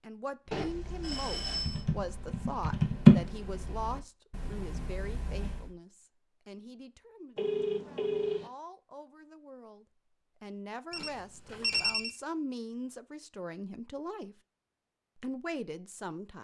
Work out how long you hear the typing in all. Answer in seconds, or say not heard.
5 s.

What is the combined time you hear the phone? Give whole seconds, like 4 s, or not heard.
4 s.